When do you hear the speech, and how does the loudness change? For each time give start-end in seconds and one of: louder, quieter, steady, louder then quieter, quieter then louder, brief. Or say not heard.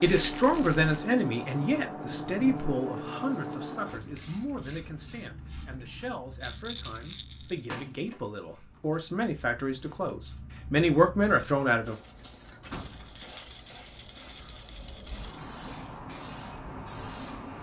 0.0-11.9 quieter then louder.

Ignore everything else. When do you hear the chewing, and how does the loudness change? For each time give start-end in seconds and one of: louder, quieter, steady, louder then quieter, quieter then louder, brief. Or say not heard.
not heard.